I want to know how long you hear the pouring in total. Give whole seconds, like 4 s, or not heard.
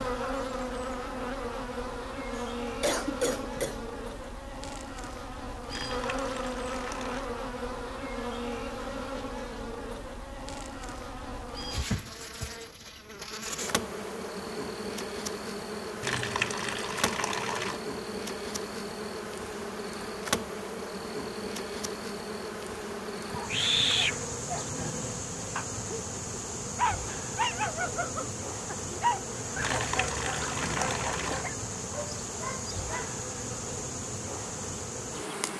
5 s.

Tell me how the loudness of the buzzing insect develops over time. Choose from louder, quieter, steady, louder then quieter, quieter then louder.
steady.